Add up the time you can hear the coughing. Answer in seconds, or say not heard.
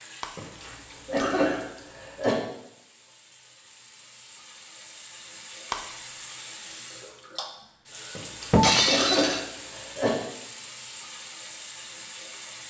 4 s.